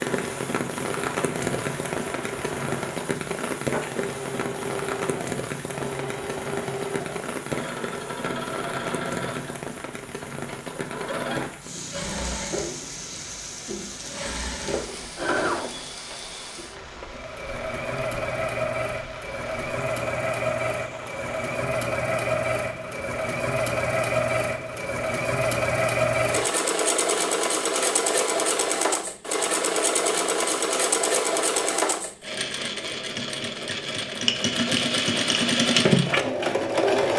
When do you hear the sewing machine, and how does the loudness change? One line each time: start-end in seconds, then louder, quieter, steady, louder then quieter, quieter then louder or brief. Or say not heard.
0.1-37.1 louder.